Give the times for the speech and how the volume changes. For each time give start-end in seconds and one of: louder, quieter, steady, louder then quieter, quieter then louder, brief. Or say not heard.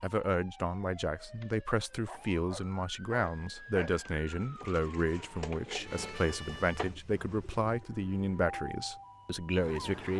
0.0-10.1 steady.